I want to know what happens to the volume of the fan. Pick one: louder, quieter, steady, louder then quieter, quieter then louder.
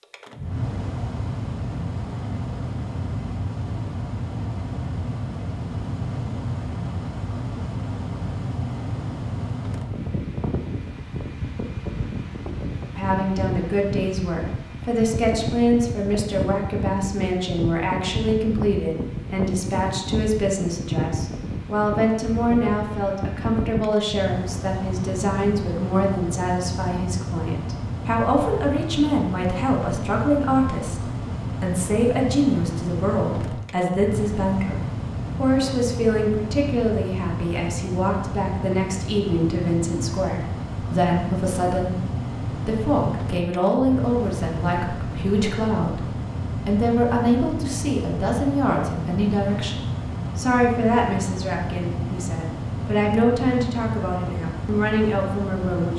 steady.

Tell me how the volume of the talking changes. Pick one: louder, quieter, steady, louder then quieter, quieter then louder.
steady.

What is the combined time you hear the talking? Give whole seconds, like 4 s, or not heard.
43 s.